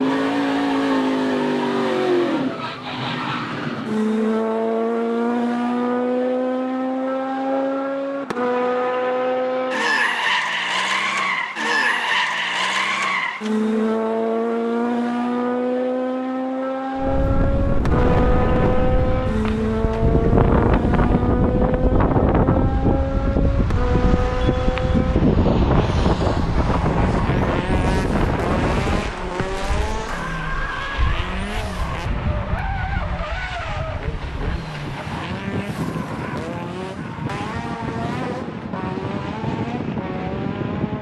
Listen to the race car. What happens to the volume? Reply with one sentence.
The loudness of the race car goes down.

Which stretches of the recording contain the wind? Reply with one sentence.
You can hear the wind from 16.9 to 40.9 s.